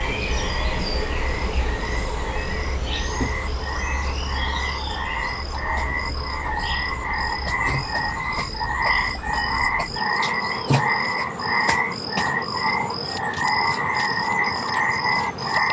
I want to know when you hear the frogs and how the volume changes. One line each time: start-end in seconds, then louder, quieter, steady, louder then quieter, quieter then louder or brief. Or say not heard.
0.0-15.6 louder.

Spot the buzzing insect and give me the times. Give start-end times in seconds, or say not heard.
0.0-15.6.